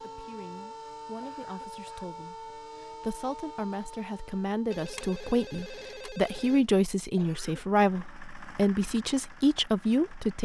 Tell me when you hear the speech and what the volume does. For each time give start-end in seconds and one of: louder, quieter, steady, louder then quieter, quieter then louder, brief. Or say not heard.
0.0-10.4 louder.